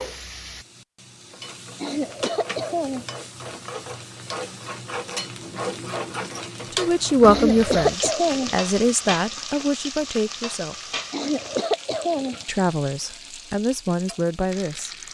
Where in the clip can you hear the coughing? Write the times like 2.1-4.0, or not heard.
1.8-3.1, 7.2-8.6, 11.1-12.4.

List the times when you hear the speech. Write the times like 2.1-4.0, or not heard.
6.7-10.9, 12.4-14.9.